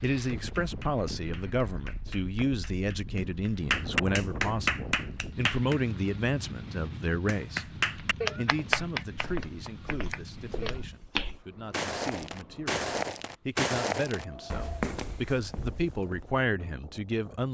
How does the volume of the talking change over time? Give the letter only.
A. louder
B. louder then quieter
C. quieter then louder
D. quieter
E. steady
C.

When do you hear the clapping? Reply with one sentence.
You can hear the clapping from 0.0 to 5.8 s and from 7.2 to 10.8 s.